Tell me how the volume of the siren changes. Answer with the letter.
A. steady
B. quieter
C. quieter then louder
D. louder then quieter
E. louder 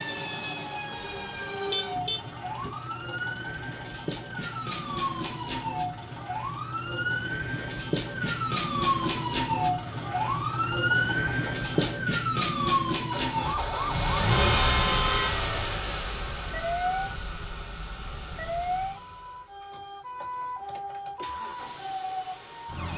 D.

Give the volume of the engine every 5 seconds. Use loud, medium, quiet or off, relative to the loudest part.
quiet, quiet, loud, medium, quiet.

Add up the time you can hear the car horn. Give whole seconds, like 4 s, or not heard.
3 s.